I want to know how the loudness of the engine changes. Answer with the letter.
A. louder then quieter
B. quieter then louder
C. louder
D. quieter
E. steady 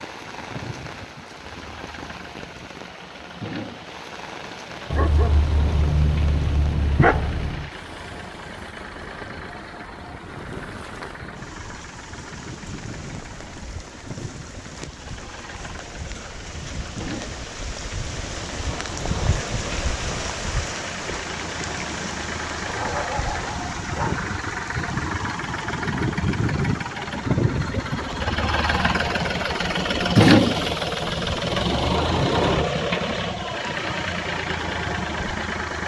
C.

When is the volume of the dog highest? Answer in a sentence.
The volume of the dog peaks at 7 seconds.